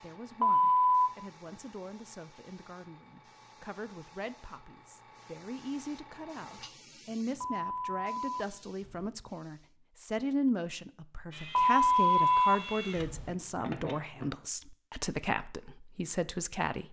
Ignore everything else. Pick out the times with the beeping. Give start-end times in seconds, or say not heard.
0.4-1.1, 7.4-9.1, 11.6-13.3.